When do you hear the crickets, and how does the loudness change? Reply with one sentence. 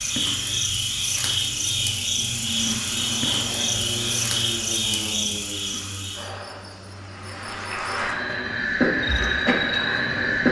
The crickets can be heard from 0.0 to 10.4 s, getting quieter then louder.